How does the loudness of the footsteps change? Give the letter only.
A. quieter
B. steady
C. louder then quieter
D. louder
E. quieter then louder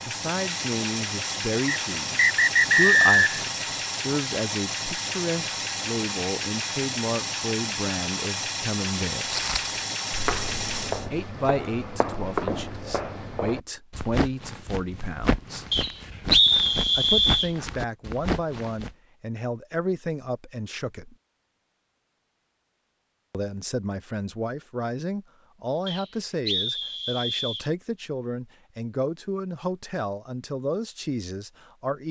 B.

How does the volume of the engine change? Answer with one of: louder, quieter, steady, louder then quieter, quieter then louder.
steady.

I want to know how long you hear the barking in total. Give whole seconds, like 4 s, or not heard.
not heard.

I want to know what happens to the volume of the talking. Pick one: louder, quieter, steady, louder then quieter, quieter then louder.
steady.